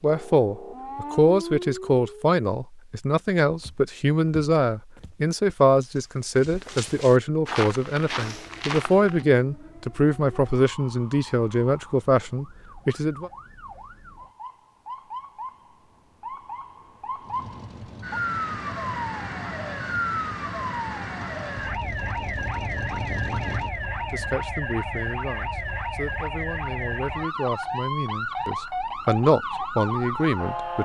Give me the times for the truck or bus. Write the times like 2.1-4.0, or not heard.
17.2-24.5.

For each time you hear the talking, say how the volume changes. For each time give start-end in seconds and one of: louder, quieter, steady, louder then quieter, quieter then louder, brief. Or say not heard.
0.0-13.3 steady
24.1-30.7 louder.